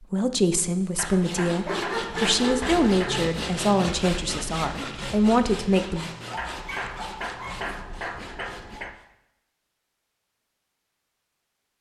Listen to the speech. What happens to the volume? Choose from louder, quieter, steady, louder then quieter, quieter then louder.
steady.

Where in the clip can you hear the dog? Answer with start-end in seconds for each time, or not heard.
1.6-3.3, 6.2-7.5.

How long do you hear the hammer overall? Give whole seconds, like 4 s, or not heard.
5 s.